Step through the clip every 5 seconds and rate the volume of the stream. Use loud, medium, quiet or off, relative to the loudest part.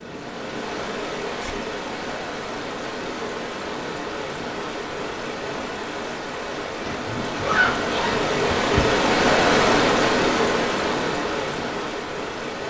medium, loud, loud.